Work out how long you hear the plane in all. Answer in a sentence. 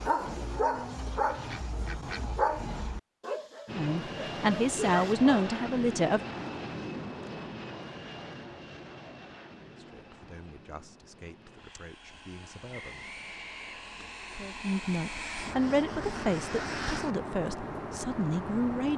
You can hear the plane for 15 seconds altogether.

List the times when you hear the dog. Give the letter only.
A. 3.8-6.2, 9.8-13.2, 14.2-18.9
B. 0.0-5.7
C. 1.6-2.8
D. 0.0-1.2
B.